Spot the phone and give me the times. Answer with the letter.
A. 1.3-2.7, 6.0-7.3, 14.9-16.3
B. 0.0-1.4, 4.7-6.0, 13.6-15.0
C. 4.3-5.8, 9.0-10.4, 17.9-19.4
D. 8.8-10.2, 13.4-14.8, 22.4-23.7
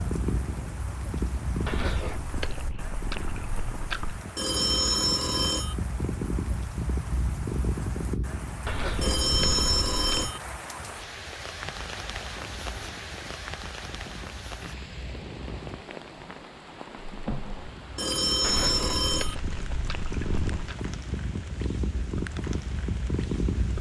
C.